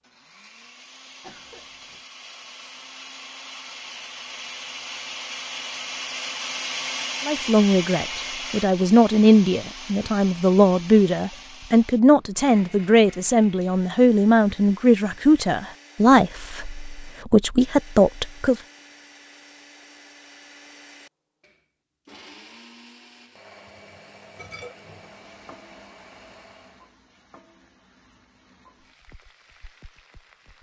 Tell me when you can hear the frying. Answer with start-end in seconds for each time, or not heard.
23.6-30.5.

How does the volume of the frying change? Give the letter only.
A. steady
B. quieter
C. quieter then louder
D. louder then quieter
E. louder
B.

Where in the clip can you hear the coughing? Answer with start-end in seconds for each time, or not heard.
1.2-2.0.